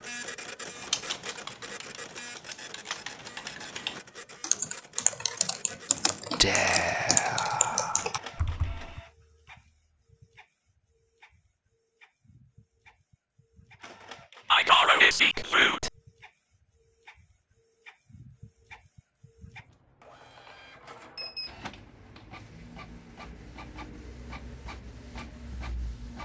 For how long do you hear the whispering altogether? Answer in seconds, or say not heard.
3 s.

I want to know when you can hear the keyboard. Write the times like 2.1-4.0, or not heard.
0.8-9.0.